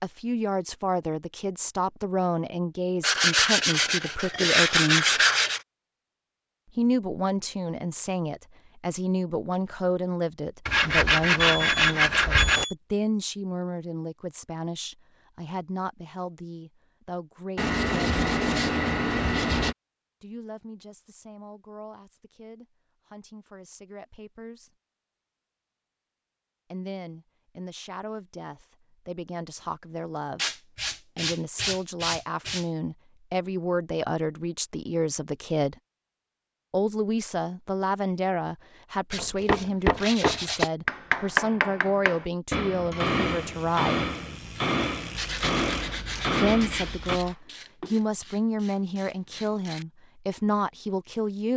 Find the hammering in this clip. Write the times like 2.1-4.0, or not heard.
39.1-47.2.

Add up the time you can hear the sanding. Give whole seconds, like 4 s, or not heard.
13 s.